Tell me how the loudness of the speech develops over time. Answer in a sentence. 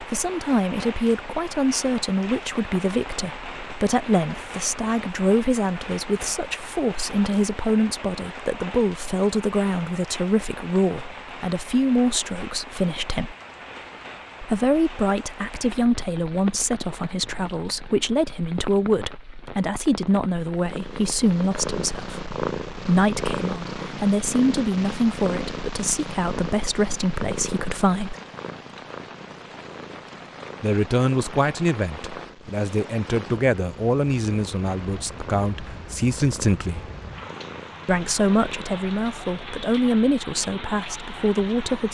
The volume of the speech stays about the same.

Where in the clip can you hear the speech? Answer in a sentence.
The speech can be heard from 0.0 to 13.3 s, from 14.4 to 28.1 s, from 30.6 to 36.9 s and from 37.9 to 41.9 s.